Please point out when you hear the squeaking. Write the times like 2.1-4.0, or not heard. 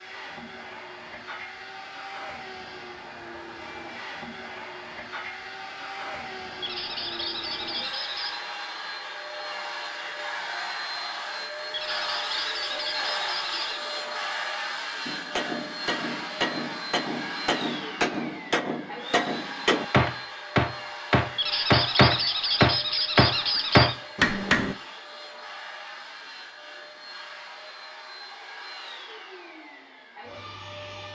6.6-8.4, 11.7-13.9, 21.4-23.9.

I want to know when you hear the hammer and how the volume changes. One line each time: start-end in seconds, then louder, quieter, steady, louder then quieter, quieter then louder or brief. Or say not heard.
15.1-24.8 louder.